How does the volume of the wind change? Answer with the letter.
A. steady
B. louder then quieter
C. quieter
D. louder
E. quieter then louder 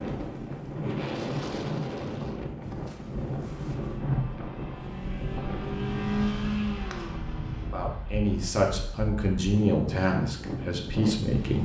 E.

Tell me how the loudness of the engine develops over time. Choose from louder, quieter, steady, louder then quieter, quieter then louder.
louder then quieter.